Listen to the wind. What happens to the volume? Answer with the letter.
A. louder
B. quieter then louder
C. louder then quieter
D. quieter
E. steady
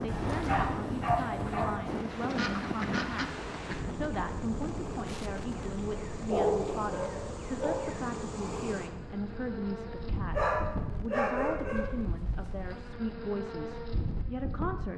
D.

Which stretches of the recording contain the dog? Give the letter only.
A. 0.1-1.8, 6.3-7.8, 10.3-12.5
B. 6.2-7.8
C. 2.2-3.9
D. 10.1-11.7
A.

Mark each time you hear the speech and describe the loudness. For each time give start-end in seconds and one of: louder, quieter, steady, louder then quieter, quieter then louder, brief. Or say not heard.
0.0-14.9 steady.